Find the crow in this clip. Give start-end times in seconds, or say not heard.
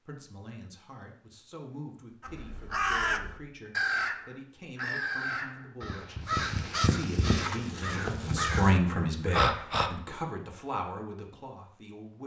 2.2-9.9.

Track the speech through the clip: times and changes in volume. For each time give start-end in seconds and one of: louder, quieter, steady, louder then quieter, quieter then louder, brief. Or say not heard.
0.1-12.2 louder then quieter.